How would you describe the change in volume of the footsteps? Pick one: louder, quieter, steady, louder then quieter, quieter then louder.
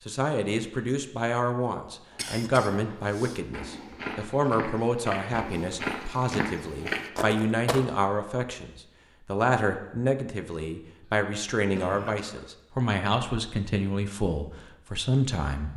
louder.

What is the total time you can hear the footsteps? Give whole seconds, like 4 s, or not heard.
6 s.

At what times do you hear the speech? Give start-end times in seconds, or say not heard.
0.1-15.7.